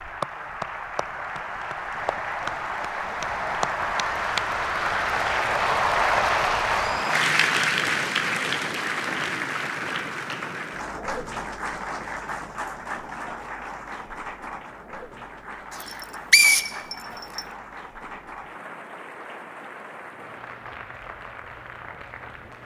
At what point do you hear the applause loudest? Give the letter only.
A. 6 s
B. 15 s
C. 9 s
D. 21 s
A.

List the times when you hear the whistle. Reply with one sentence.
The whistle can be heard from 15.8 to 17.4 s.